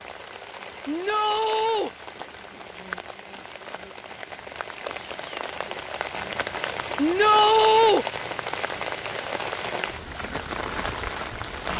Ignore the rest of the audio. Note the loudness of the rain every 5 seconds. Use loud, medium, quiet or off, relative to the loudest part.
medium, loud, loud.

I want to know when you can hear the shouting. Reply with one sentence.
The shouting can be heard from 0.8 to 1.9 s and from 7.0 to 8.1 s.